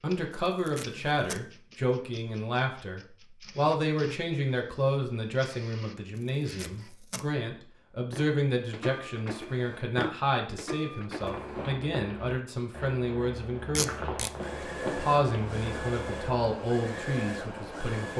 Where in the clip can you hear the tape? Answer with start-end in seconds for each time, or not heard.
0.3-1.4, 6.2-7.3, 13.8-14.3.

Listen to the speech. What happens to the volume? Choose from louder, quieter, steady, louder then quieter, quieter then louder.
steady.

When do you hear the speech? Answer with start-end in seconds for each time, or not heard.
0.0-14.2, 14.9-18.1.